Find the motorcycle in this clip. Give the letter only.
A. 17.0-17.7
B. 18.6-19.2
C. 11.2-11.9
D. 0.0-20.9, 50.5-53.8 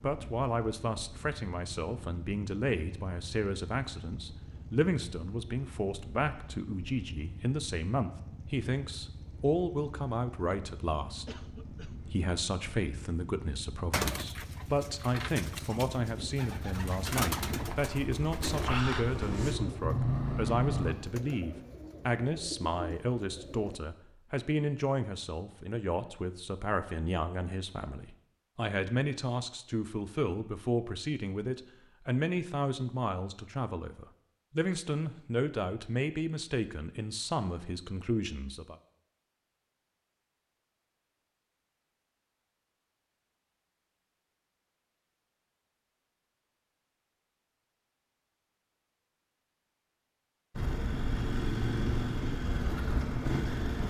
D.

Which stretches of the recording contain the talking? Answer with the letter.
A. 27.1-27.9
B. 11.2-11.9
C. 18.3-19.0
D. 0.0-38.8
D.